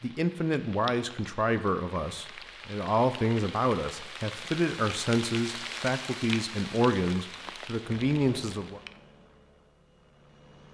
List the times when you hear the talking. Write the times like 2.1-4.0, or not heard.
0.0-8.8.